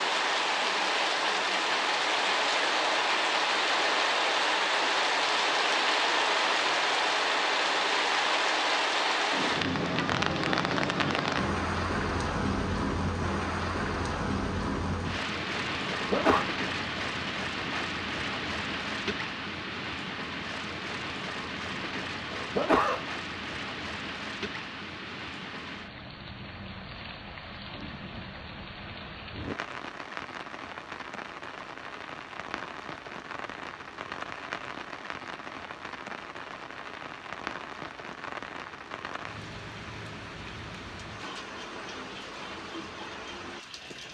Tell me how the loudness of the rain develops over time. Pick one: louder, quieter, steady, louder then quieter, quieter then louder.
quieter.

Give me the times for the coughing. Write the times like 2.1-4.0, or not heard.
15.9-16.4, 22.4-23.1.